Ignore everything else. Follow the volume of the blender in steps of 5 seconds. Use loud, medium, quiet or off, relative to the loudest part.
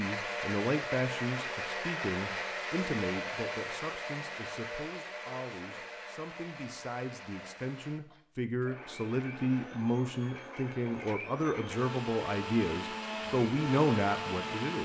loud, medium, loud.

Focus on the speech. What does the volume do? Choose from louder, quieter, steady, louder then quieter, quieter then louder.
quieter then louder.